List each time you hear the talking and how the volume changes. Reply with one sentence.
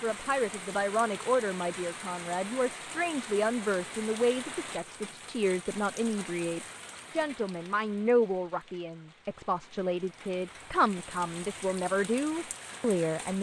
The talking can be heard from 0.0 to 13.3 s, at a steady volume.